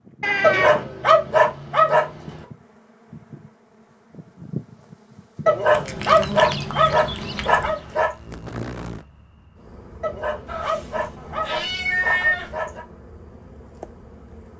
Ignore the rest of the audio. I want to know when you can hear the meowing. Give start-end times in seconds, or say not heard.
0.2-0.8, 5.7-7.8, 10.4-12.5.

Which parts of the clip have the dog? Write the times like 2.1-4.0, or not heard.
0.4-2.5, 5.5-8.1, 10.0-12.8.